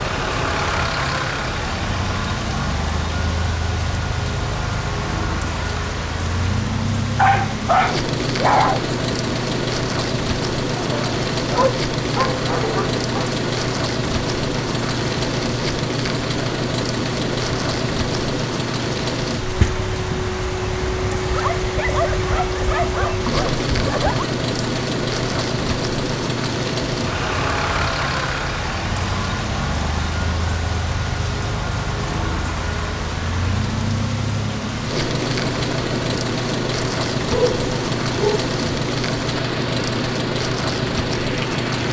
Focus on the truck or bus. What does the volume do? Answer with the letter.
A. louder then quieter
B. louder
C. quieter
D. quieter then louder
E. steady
E.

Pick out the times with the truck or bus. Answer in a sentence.
You can hear the truck or bus from 0.0 to 41.8 s.